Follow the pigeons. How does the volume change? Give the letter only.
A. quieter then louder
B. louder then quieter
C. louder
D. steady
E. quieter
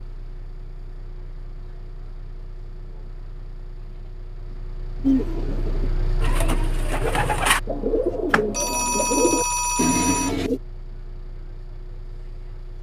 C.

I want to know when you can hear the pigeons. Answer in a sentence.
The pigeons can be heard from 5.0 to 10.6 s.